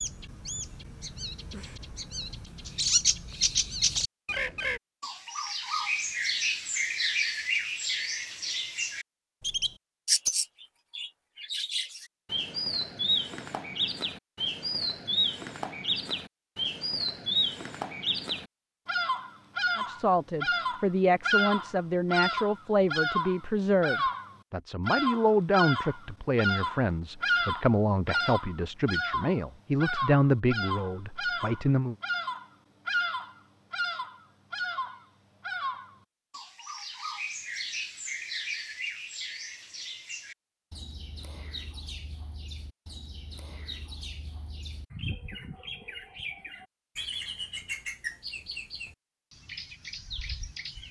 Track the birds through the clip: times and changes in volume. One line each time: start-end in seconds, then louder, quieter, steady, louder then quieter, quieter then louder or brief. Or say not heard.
0.0-50.8 quieter.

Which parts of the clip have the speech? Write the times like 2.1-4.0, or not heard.
19.8-31.9.